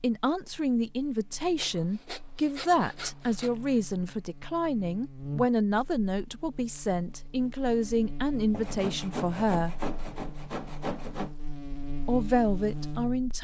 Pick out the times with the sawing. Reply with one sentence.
You can hear the sawing from 1.6 to 3.8 s and from 8.5 to 11.3 s.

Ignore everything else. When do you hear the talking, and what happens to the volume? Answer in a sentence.
The talking can be heard from 0.0 to 9.8 s, at a steady volume; and briefly from 12.1 to 13.3 s.